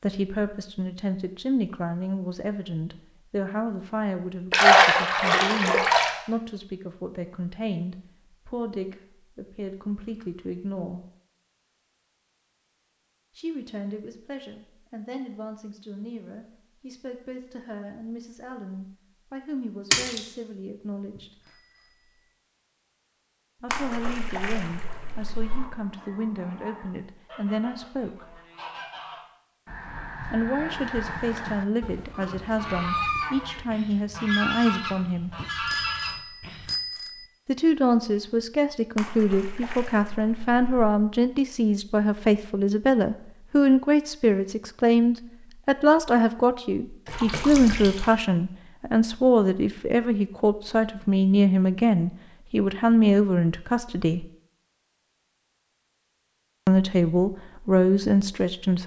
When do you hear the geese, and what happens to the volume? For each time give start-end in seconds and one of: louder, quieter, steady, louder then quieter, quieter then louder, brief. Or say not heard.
25.4-36.8 louder.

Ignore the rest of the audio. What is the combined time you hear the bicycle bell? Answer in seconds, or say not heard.
3 s.